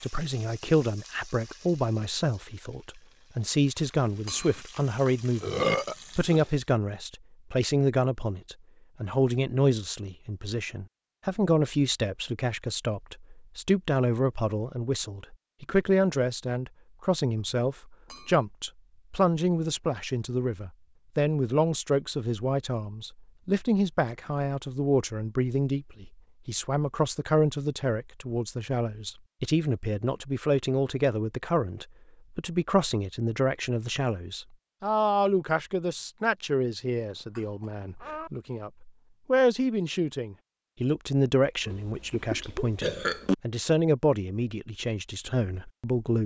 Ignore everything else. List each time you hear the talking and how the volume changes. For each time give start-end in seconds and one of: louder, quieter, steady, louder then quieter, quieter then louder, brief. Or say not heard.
0.0-46.2 steady.